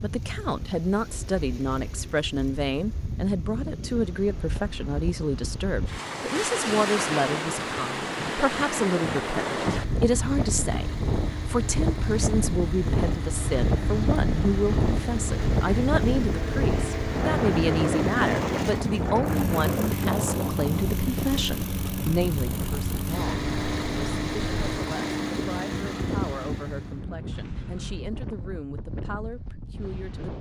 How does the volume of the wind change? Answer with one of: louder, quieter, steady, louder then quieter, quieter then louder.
louder then quieter.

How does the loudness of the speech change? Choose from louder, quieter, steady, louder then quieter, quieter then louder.
quieter.